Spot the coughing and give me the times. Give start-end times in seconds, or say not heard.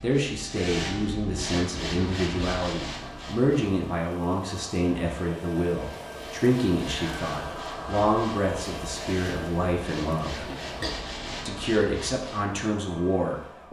10.3-10.9.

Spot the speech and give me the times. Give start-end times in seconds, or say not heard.
0.0-10.5, 11.4-13.6.